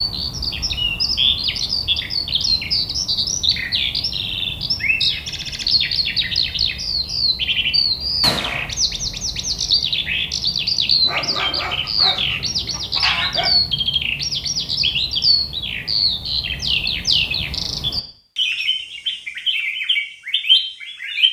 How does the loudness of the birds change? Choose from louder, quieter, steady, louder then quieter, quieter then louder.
steady.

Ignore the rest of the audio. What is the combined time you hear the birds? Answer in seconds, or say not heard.
21 s.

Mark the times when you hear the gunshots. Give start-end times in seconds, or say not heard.
8.2-8.7.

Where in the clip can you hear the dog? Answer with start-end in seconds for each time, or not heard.
11.1-13.5.